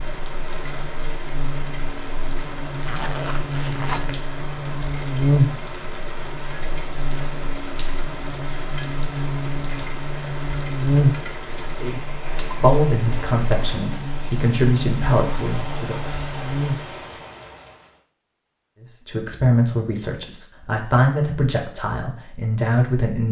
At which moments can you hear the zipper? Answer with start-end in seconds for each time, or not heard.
2.8-4.2.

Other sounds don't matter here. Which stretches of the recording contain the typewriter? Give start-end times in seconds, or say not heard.
not heard.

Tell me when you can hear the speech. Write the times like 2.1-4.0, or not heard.
11.7-15.9, 19.1-23.2.